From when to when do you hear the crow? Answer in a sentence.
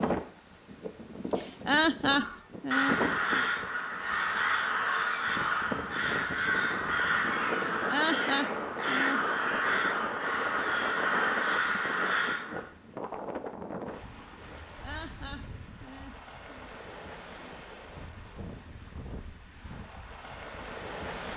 The crow can be heard from 2.1 to 12.7 s.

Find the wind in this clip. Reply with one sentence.
The wind can be heard from 0.0 to 21.3 s.